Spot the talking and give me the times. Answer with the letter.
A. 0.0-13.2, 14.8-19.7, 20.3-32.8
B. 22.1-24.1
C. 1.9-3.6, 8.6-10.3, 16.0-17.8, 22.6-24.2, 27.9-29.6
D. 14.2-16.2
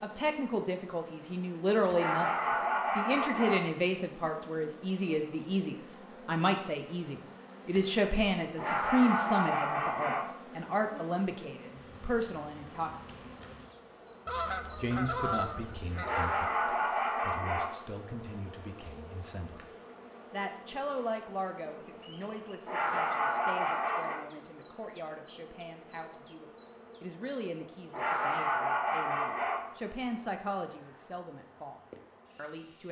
A.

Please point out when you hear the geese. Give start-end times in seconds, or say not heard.
14.2-16.2.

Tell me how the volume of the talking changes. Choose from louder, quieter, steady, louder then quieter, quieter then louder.
quieter.